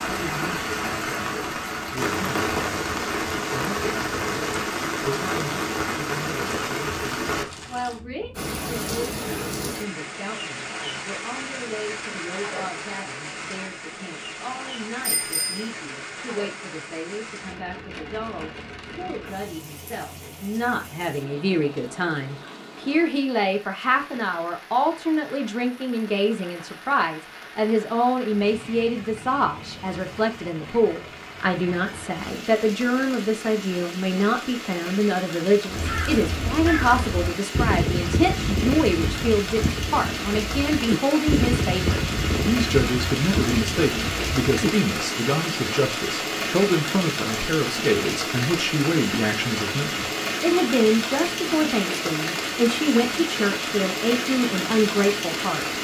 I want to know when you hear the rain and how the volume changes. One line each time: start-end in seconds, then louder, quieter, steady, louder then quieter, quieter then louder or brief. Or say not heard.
0.0-55.8 quieter then louder.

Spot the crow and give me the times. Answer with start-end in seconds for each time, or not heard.
35.6-44.7.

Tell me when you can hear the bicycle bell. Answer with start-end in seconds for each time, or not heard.
15.0-15.6.